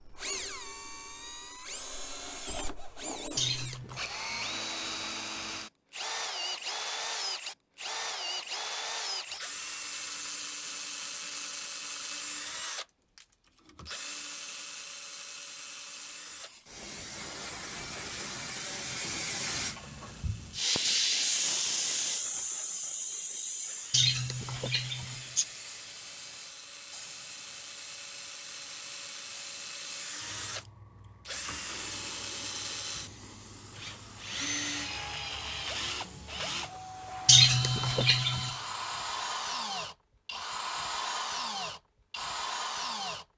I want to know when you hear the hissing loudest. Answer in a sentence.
The volume of the hissing peaks at 21 seconds.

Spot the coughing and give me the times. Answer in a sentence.
The coughing can be heard from 3.4 to 4.0 s, from 23.9 to 25.4 s and from 37.2 to 38.5 s.